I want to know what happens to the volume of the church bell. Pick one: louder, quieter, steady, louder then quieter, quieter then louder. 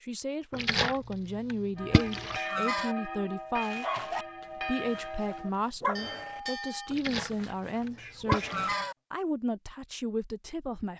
steady.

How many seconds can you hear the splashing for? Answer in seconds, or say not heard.
4 s.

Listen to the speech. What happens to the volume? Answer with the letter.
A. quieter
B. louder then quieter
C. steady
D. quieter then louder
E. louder
C.